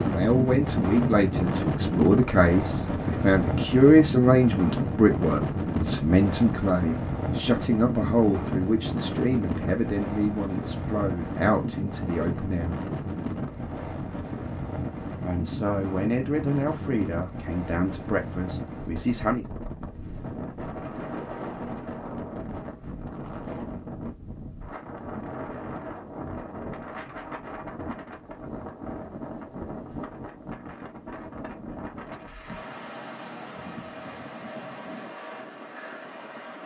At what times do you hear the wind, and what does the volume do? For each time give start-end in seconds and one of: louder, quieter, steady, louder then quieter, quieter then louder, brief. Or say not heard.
0.0-36.6 quieter.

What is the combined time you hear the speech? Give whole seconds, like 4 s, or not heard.
17 s.